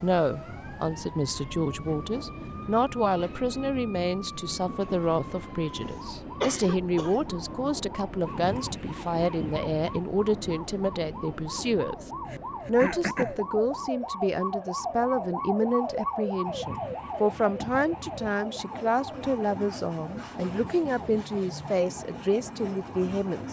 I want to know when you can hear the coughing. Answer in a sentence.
You can hear the coughing from 6.4 to 7.3 s and from 12.2 to 13.4 s.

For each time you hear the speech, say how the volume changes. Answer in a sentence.
You can hear the speech from 0.0 to 23.4 s, at a steady volume.